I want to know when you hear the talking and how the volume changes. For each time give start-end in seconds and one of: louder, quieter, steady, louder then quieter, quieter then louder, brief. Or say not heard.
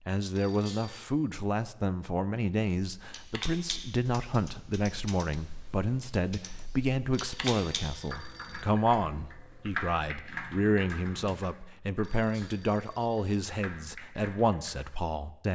0.1-15.5 steady.